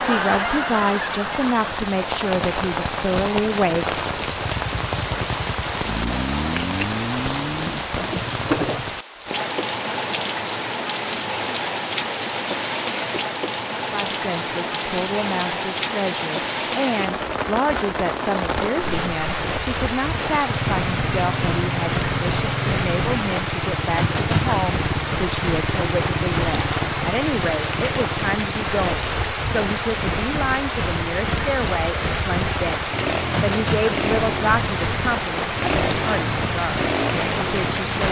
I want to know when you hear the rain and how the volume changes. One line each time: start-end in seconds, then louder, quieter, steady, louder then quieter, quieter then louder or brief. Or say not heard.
0.0-38.0 steady.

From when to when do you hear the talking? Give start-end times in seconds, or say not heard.
0.0-4.0, 13.8-38.0.